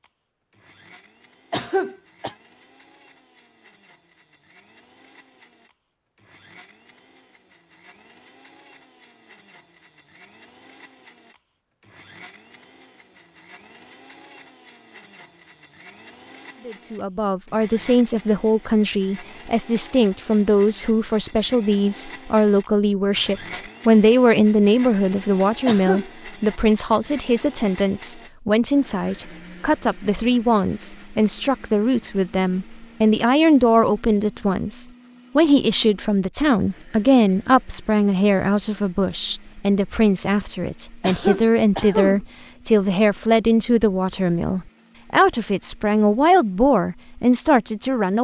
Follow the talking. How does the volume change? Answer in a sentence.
The volume of the talking stays about the same.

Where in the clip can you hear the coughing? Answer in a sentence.
The coughing can be heard from 1.5 to 2.4 s, from 25.6 to 26.1 s and from 41.0 to 42.2 s.